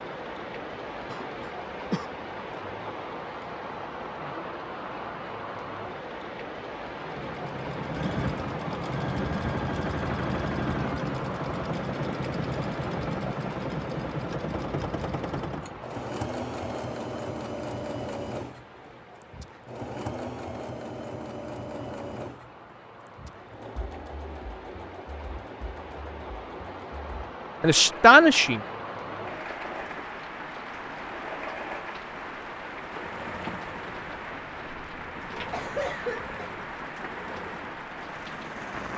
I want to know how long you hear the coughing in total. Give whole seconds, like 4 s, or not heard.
2 s.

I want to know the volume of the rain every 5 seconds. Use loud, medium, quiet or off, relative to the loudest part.
loud, loud, loud, medium, medium, loud, loud, loud.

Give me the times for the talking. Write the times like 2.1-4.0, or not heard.
27.6-28.6.